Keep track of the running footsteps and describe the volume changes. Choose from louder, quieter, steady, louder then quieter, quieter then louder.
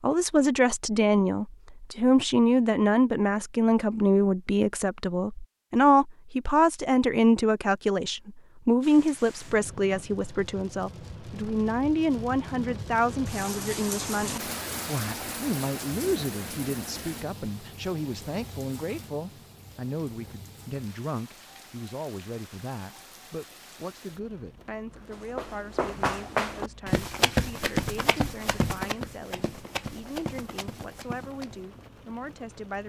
quieter.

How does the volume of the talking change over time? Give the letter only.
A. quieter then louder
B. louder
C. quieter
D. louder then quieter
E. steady
C.